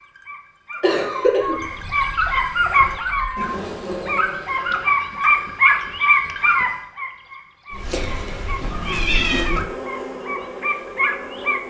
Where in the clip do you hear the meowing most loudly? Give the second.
9 s.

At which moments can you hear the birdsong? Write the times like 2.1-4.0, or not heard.
not heard.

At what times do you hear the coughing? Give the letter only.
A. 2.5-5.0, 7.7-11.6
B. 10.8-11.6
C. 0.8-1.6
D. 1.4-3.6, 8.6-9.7
C.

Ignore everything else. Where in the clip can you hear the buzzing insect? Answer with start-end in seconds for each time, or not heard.
2.5-5.0, 7.7-11.6.